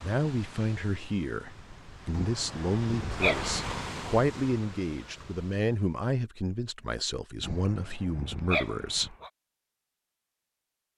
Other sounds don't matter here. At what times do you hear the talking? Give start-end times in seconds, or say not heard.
0.0-9.2.